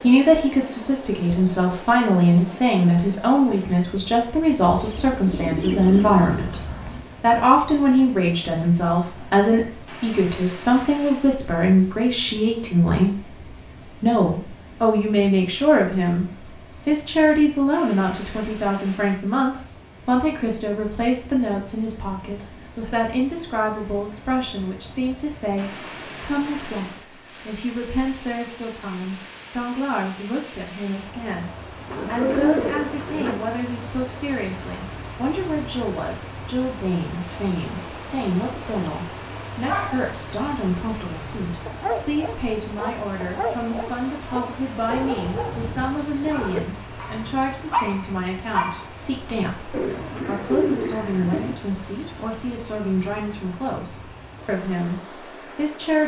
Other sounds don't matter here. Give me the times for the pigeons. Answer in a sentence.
The pigeons can be heard from 4.7 to 7.1 s, from 31.9 to 33.4 s and from 49.7 to 51.6 s.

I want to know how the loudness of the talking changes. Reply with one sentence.
The loudness of the talking goes down.